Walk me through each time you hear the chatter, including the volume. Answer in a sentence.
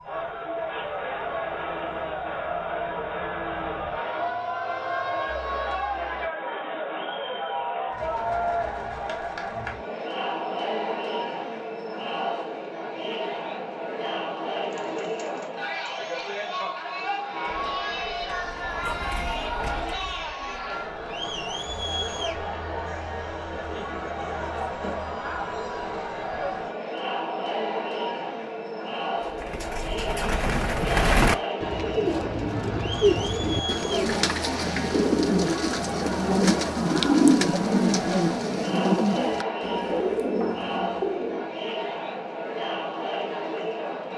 You can hear the chatter from 0.0 to 44.1 s, at a steady volume.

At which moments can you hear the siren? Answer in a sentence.
You can hear the siren from 0.0 to 6.3 s.